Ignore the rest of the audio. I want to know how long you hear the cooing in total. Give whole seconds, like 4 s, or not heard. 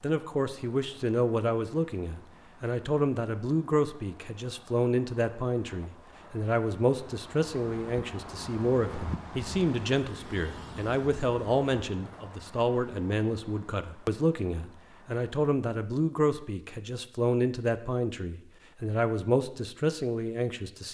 not heard.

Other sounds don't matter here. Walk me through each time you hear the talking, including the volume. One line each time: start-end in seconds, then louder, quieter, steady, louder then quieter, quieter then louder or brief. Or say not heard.
0.0-20.8 steady.